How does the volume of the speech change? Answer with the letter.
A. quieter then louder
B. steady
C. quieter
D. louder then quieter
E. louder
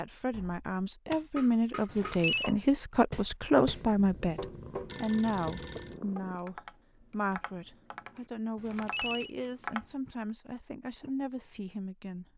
C.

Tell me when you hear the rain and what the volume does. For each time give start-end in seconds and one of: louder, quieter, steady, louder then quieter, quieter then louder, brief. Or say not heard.
not heard.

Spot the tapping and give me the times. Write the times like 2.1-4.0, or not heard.
0.3-10.2.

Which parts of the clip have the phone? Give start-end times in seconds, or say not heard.
1.9-2.5, 4.8-6.0, 8.6-9.3.